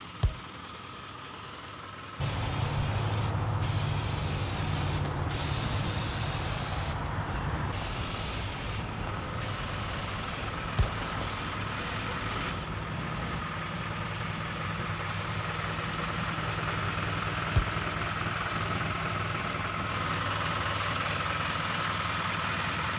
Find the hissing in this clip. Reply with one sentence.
The hissing can be heard from 2.1 to 22.7 s.